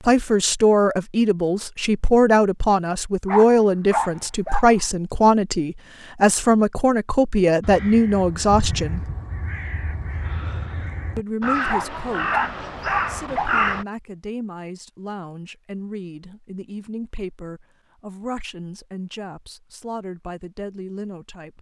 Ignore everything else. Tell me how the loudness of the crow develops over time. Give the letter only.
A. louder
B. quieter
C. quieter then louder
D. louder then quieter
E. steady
A.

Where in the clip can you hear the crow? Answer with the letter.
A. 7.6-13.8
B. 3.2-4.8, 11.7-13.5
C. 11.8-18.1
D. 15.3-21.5
A.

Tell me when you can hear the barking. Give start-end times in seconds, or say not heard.
3.2-4.8, 11.7-13.5.